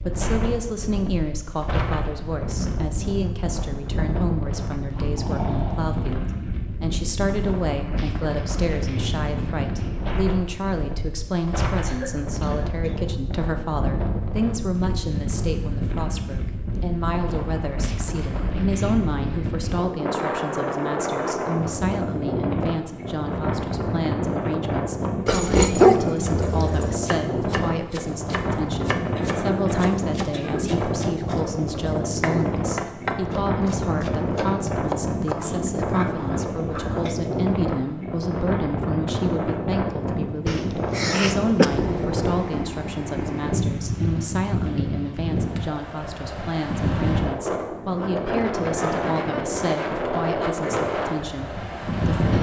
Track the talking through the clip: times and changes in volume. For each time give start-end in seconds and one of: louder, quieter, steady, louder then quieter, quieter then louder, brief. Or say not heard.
0.0-52.1 steady.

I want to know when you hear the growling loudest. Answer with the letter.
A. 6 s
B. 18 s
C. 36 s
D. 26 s
D.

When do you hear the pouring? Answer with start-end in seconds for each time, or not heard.
not heard.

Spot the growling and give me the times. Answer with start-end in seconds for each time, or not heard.
4.7-6.5, 25.2-26.9, 35.2-37.1.